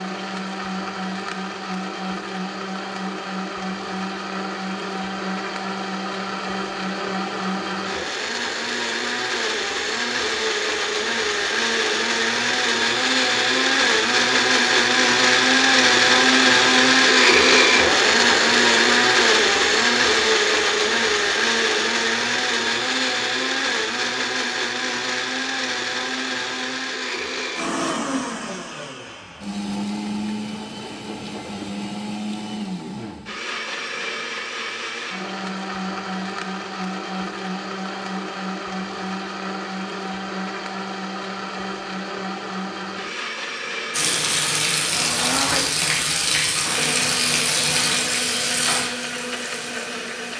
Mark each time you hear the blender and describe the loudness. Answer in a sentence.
The blender can be heard from 0.0 to 50.3 s, getting louder then quieter.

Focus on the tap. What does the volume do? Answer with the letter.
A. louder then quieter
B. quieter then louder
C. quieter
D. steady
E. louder
C.